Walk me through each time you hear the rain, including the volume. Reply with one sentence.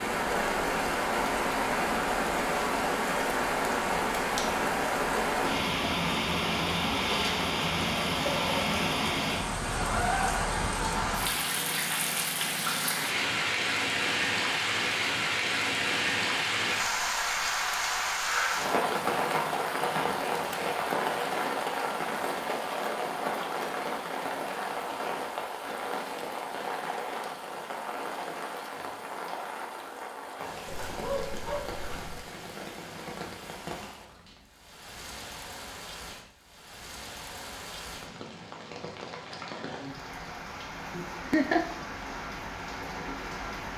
You can hear the rain from 0.0 to 43.7 s, getting quieter.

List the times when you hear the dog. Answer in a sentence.
You can hear the dog from 30.6 to 32.2 s.